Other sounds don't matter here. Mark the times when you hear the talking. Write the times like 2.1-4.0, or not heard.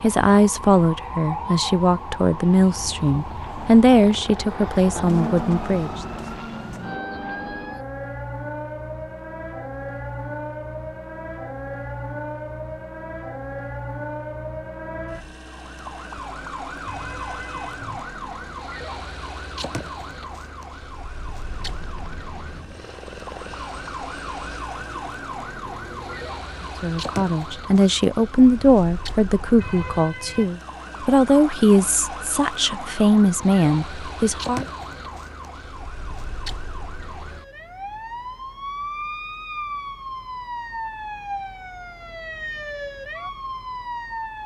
0.0-5.9, 26.8-34.6.